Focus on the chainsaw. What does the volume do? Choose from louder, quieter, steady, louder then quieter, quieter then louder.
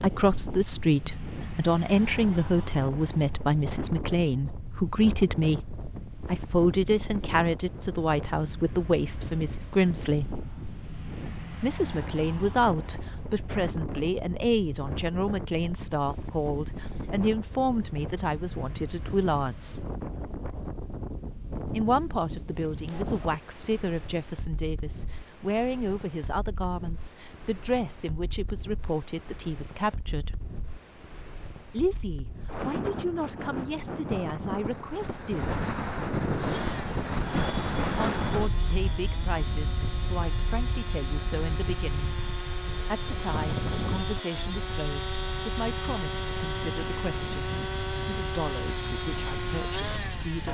louder.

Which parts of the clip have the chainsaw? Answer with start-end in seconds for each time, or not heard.
36.4-50.5.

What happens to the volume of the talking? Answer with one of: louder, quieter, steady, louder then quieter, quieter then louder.
quieter.